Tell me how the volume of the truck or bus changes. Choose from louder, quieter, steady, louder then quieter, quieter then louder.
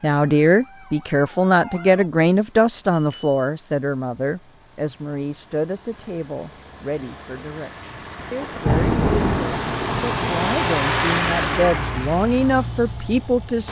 louder.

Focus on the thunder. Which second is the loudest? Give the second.
9 s.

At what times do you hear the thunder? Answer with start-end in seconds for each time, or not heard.
8.2-10.5.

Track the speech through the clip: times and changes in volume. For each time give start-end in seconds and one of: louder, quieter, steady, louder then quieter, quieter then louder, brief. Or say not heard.
0.0-13.6 quieter then louder.